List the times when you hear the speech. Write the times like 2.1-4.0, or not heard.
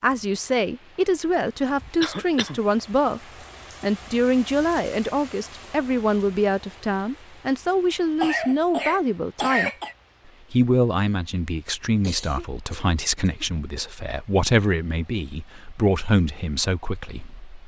0.0-3.2, 3.8-9.7, 10.5-17.6.